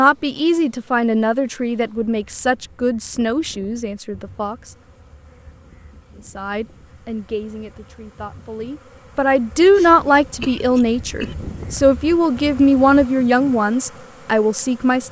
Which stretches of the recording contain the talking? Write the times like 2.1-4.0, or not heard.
0.0-4.8, 6.2-15.0.